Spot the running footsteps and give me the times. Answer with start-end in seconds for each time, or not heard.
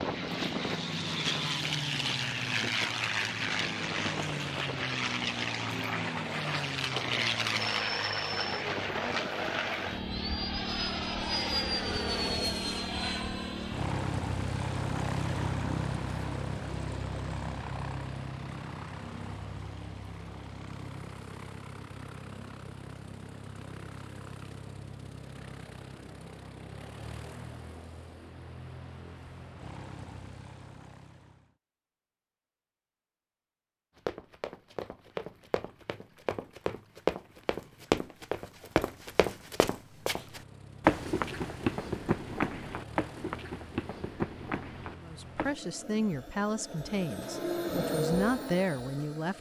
34.0-45.5.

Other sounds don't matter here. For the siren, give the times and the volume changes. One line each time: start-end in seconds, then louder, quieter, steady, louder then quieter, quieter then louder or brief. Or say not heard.
not heard.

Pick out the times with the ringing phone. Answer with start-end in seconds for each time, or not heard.
7.6-8.7.